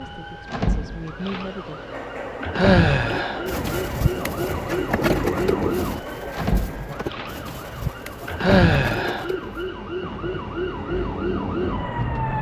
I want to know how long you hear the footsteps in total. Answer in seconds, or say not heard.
not heard.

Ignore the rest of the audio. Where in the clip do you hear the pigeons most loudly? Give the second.
5 s.